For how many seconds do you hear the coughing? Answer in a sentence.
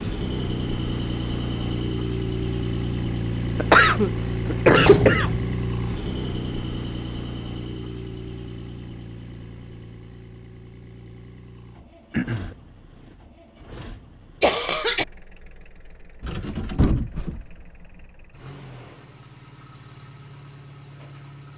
You can hear the coughing for 3 seconds altogether.